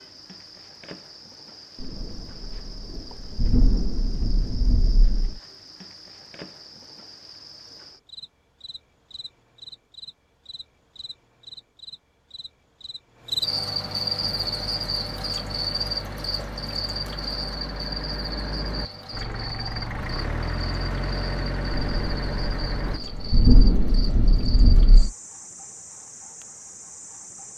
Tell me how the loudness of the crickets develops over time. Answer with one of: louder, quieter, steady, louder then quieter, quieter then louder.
louder then quieter.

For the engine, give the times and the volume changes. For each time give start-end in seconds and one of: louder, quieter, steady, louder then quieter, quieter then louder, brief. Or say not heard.
14.2-23.0 louder.